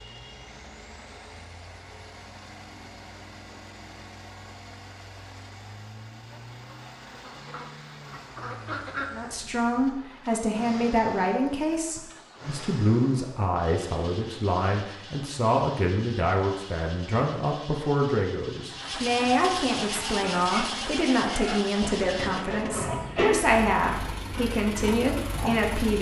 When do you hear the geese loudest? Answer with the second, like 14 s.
9 s.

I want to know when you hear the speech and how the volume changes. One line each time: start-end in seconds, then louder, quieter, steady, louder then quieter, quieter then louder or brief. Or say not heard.
9.1-25.9 steady.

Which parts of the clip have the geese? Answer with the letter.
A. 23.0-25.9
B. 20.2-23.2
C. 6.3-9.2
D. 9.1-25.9
C.